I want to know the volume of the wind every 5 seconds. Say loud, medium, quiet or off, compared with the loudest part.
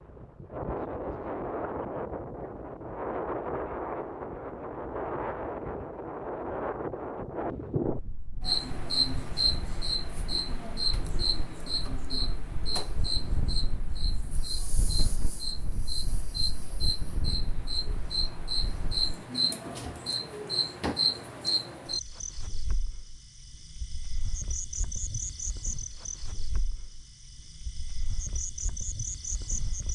loud, loud, medium, medium, off, off.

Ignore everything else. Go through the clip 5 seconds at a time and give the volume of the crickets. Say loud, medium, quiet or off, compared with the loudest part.
off, loud, medium, medium, medium, medium.